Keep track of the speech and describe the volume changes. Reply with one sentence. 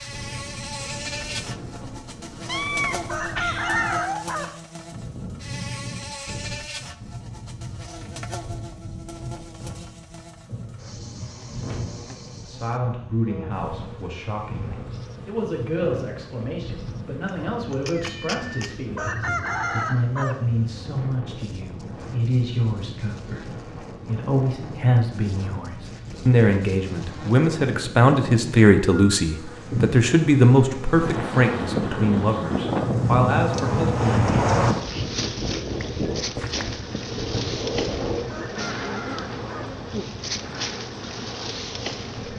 The loudness of the speech goes up.